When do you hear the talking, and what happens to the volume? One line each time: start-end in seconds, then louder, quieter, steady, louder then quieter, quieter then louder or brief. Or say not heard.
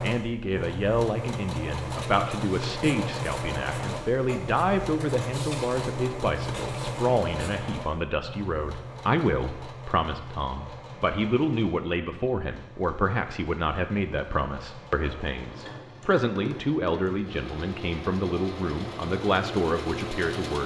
0.0-20.6 steady.